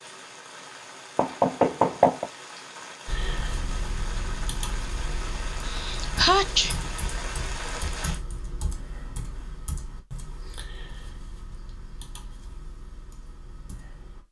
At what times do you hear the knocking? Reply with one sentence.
The knocking can be heard from 1.1 to 2.3 s.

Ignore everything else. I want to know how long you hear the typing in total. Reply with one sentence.
The typing can be heard for 11 seconds in total.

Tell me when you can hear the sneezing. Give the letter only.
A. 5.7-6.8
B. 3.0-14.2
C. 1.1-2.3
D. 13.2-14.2
A.